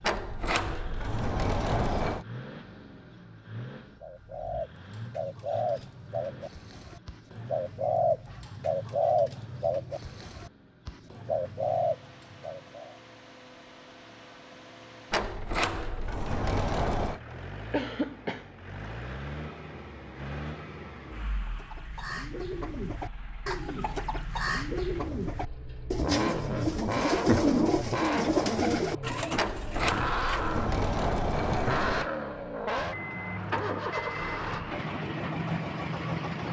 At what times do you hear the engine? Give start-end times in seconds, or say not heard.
0.0-36.4.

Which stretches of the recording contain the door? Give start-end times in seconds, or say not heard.
0.0-2.2, 15.1-17.2, 29.4-32.1.